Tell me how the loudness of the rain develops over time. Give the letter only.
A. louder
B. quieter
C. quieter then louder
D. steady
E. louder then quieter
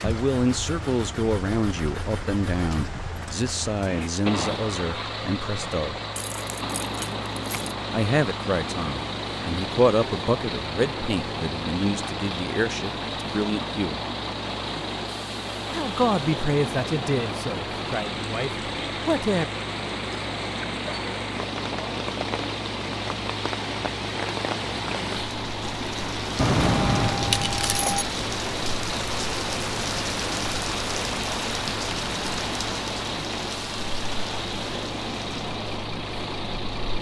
A.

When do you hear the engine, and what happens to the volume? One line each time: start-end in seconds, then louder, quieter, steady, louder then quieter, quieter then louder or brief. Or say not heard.
0.0-36.9 steady.